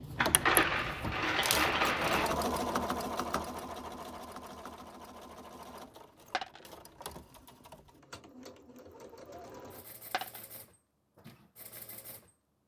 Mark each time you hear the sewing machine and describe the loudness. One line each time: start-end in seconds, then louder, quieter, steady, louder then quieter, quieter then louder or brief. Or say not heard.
0.0-12.3 quieter.